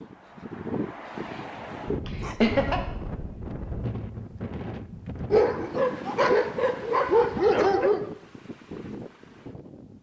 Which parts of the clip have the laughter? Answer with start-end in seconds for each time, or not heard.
2.0-2.8.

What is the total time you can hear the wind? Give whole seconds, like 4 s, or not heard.
10 s.